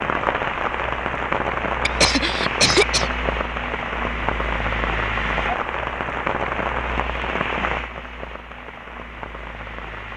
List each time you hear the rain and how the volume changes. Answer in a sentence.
The rain can be heard from 0.0 to 10.1 s, getting quieter.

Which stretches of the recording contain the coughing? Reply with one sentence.
You can hear the coughing from 1.9 to 3.1 s.